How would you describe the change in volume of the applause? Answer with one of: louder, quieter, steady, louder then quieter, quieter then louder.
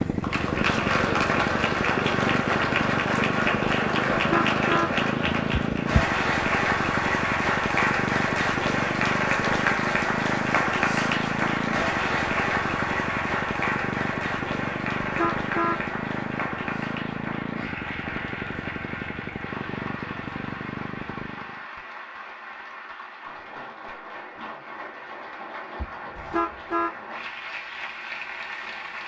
quieter.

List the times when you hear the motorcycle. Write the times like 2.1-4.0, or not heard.
0.0-21.6.